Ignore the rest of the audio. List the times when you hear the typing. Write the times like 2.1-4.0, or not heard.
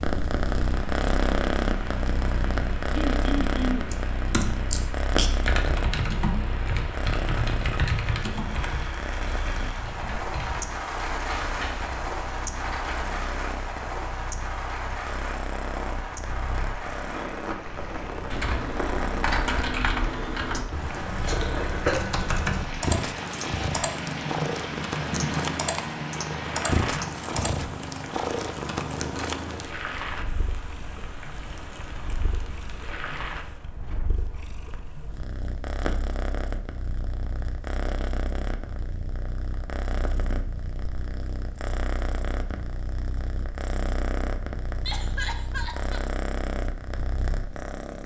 3.9-13.1, 18.3-27.5.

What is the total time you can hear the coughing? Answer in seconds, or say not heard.
2 s.